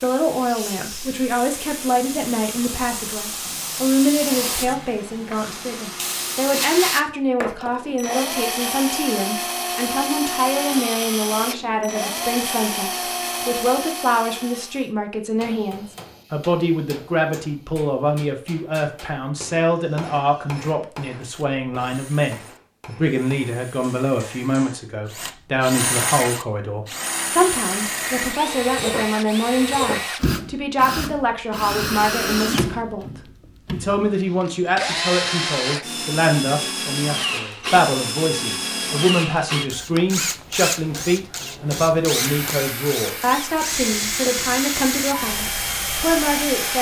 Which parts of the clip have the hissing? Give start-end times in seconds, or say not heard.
0.0-7.0, 41.4-46.7.